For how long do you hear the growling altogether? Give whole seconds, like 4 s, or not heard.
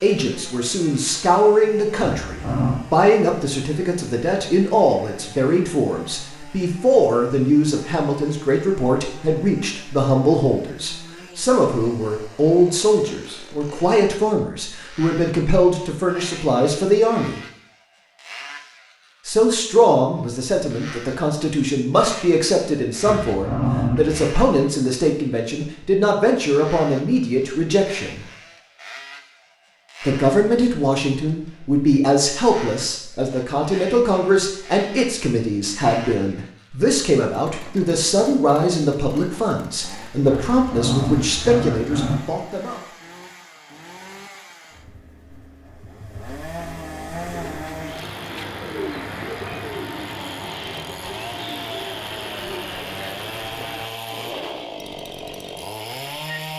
4 s.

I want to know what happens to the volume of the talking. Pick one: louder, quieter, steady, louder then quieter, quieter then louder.
steady.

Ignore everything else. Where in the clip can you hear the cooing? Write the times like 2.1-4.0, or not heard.
47.1-54.6.